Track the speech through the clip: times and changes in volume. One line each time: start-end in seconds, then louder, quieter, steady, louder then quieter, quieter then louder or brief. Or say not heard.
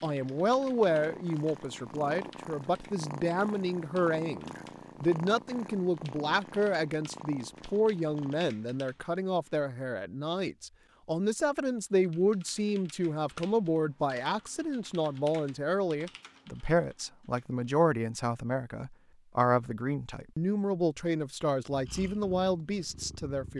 0.0-23.5 steady.